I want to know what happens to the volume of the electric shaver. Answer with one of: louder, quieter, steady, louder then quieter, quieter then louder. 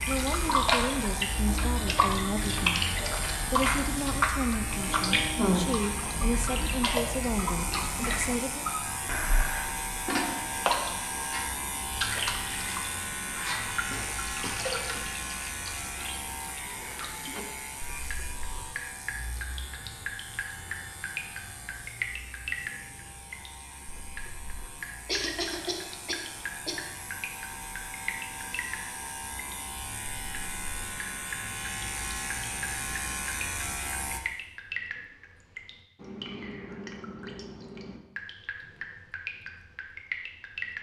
quieter then louder.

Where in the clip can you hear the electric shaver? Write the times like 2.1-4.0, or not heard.
0.0-34.2.